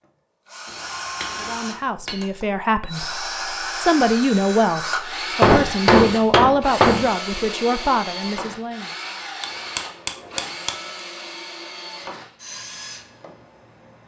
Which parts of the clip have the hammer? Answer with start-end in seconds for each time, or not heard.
0.7-2.2, 5.4-7.0, 9.4-10.8.